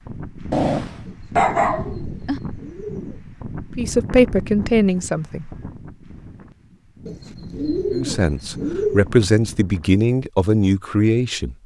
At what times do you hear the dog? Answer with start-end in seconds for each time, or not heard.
0.5-2.4.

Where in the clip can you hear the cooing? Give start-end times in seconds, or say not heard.
1.1-3.2, 7.0-9.1.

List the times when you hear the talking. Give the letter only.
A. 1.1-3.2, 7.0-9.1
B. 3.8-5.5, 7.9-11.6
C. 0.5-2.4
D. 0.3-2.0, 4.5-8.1
B.